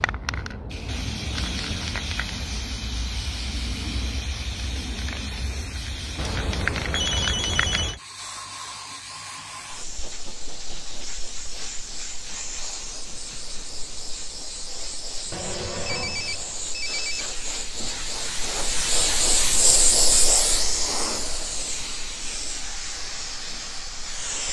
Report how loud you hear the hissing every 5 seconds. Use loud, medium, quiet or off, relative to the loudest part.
medium, medium, medium, loud, loud.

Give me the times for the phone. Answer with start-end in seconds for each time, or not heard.
6.2-8.0, 15.3-17.2.